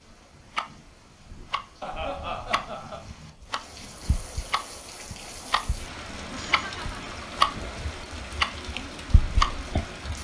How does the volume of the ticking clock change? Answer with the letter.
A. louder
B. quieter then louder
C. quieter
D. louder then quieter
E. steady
A.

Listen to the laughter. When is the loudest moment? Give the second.
2 s.